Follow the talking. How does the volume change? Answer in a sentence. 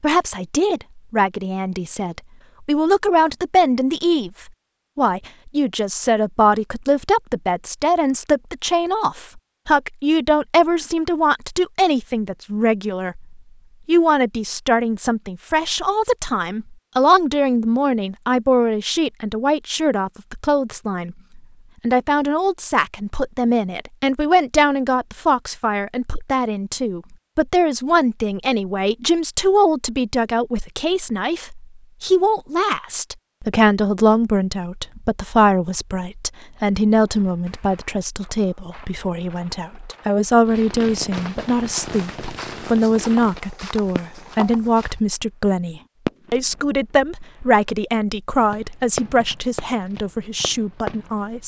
The volume of the talking stays about the same.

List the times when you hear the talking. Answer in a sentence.
You can hear the talking from 0.0 to 51.4 s.